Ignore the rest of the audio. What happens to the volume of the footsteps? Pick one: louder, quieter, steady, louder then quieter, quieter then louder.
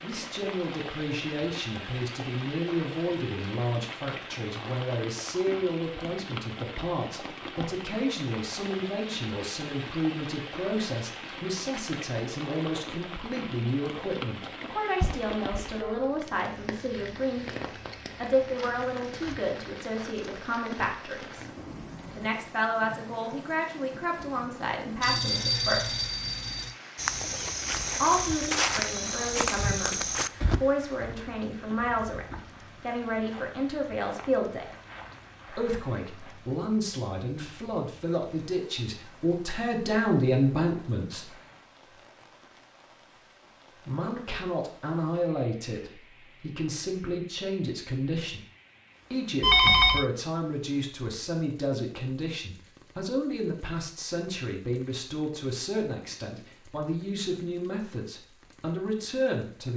quieter.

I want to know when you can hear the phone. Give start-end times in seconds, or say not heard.
15.0-16.1, 25.0-26.8, 49.4-50.0.